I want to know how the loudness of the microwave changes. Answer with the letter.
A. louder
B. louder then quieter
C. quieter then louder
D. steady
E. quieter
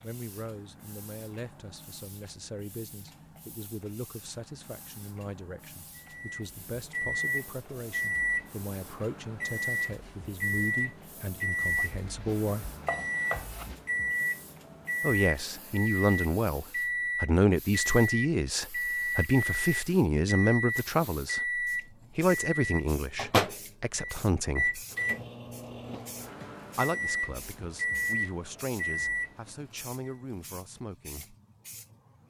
D.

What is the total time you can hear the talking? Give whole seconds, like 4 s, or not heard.
27 s.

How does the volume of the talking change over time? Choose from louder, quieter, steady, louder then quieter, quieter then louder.
louder then quieter.